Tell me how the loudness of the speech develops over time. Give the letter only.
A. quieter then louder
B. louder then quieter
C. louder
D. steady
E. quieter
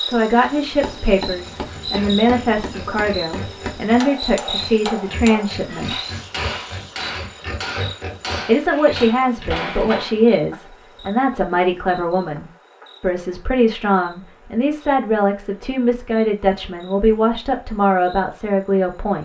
D.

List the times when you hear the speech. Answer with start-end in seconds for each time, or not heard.
0.0-6.0, 8.4-19.2.